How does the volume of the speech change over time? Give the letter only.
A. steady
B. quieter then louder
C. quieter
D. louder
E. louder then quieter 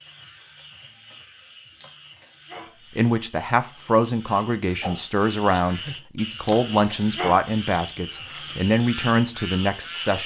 A.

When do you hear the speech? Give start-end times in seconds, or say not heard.
3.0-10.2.